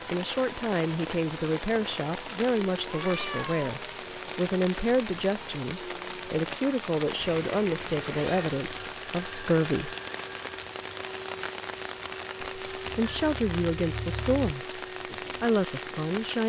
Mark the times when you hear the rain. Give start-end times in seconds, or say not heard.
0.0-16.4.